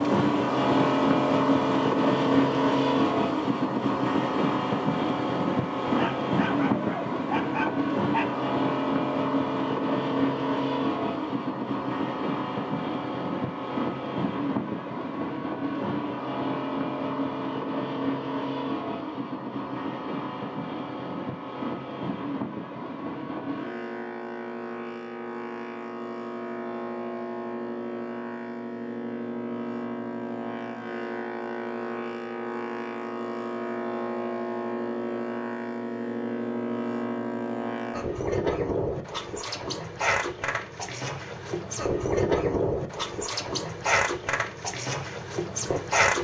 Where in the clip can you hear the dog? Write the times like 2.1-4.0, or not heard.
5.8-8.4.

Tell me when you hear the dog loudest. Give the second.
7 s.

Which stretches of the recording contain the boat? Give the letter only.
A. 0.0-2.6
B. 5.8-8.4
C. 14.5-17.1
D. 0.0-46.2
D.